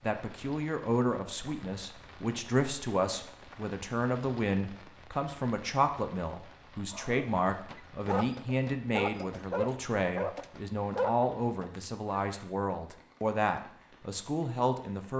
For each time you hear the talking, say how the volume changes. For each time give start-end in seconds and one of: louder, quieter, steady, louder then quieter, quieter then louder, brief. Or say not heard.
0.0-15.1 steady.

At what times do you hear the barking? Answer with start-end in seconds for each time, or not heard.
6.9-12.4.